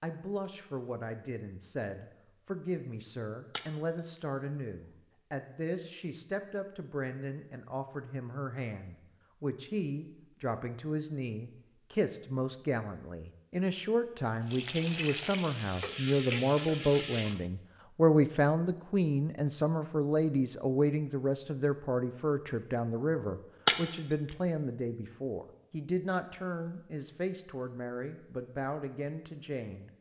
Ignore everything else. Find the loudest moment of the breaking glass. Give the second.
24 s.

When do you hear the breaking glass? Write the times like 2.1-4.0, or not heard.
3.5-4.2, 23.6-24.4.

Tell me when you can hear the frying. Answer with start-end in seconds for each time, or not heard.
14.4-17.4.